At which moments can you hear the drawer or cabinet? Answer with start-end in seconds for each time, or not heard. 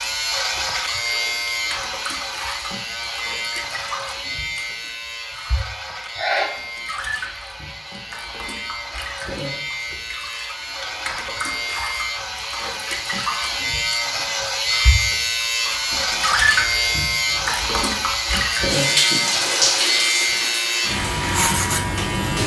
not heard.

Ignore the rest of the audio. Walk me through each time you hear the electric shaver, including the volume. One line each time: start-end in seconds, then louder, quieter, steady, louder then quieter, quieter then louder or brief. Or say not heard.
0.0-22.4 quieter then louder.